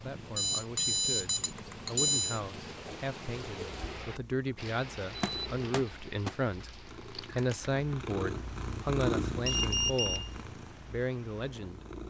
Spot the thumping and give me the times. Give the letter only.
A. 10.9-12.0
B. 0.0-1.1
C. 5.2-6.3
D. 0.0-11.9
C.